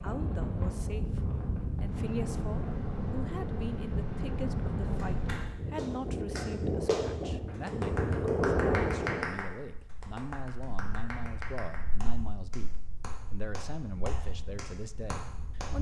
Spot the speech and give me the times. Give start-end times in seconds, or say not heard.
0.0-15.7.